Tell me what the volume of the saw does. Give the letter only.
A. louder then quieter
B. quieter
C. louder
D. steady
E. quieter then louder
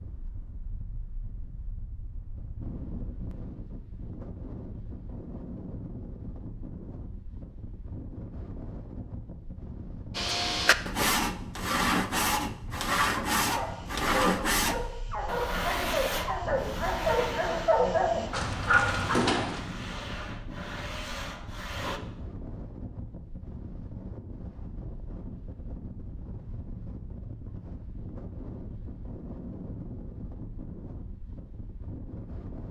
B.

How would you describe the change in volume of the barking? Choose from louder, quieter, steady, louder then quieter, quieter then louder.
louder.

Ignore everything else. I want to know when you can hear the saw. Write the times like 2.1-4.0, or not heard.
10.2-22.0.